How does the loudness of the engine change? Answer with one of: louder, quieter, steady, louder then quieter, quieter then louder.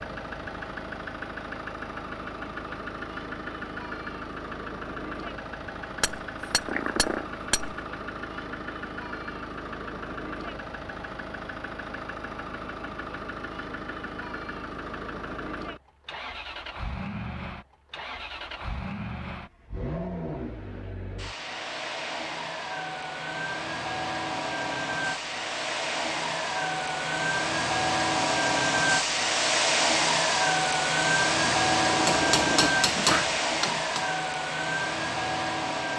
louder.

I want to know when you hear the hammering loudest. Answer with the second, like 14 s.
33 s.